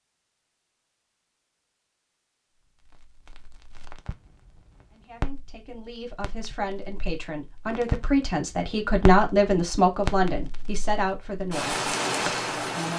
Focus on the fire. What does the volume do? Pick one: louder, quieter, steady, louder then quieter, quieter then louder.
louder.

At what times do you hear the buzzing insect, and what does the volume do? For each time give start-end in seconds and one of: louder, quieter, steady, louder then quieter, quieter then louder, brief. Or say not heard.
not heard.